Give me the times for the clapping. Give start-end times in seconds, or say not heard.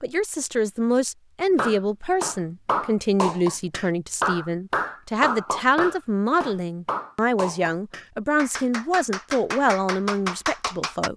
1.4-11.1.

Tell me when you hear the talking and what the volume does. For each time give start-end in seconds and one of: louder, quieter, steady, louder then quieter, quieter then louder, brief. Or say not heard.
0.0-11.1 steady.